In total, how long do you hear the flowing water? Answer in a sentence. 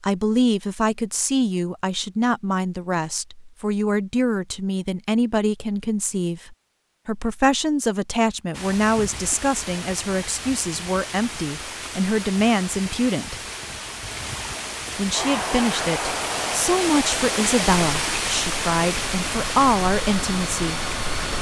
The flowing water can be heard for 13 seconds in total.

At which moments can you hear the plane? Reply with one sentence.
You can hear the plane from 15.1 to 21.3 s.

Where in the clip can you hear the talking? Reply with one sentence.
You can hear the talking from 0.0 to 13.4 s and from 14.9 to 20.8 s.